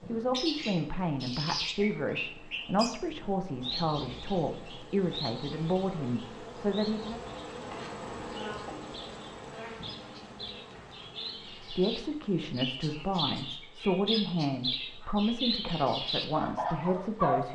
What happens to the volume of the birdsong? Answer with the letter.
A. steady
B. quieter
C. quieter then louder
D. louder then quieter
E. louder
C.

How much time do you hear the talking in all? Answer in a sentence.
You can hear the talking for 13 seconds altogether.